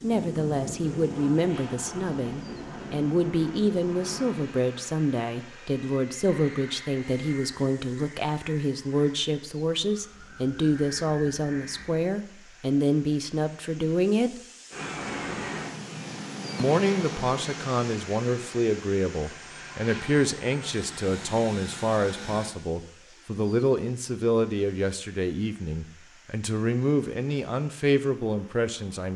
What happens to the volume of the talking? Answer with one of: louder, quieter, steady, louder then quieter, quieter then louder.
steady.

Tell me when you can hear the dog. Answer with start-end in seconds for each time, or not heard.
not heard.